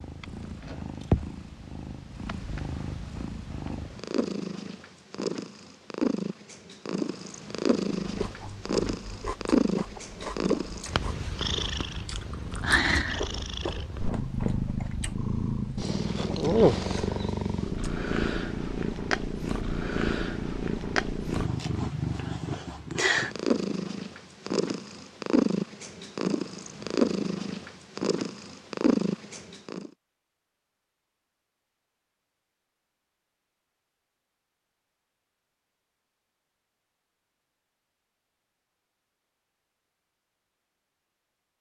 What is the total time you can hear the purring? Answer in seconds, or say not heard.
30 s.